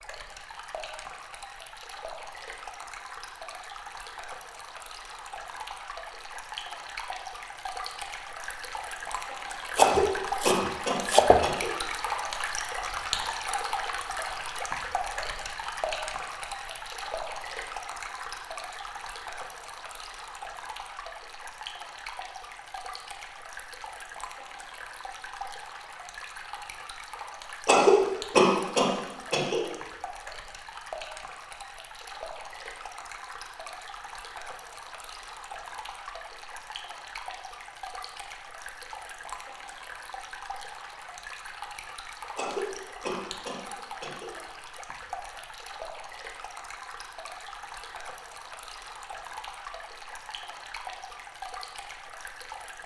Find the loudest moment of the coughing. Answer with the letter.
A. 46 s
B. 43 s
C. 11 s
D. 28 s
D.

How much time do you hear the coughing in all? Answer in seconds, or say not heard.
6 s.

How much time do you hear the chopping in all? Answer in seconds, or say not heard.
2 s.